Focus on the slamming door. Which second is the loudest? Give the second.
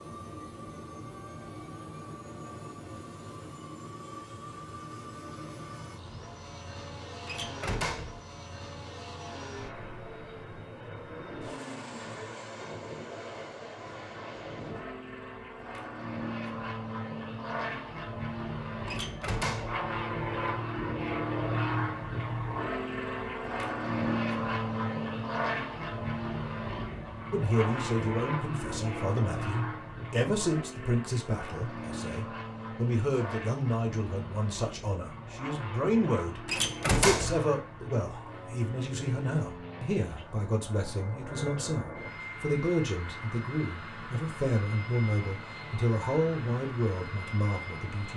37 s.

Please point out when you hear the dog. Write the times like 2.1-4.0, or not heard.
not heard.